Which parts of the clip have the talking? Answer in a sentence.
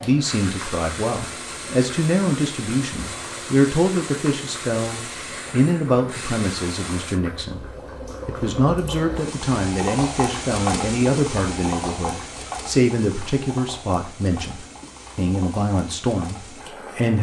You can hear the talking from 0.0 to 7.7 s and from 8.2 to 17.1 s.